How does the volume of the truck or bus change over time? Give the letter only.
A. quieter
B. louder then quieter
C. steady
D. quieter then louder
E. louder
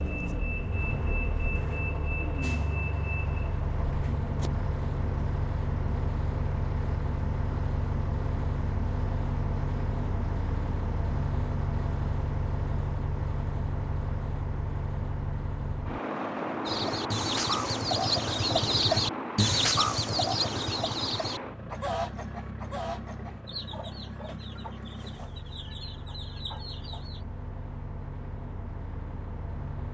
A.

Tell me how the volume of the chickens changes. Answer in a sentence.
The loudness of the chickens goes down.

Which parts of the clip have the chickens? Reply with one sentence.
You can hear the chickens from 16.6 to 27.2 s.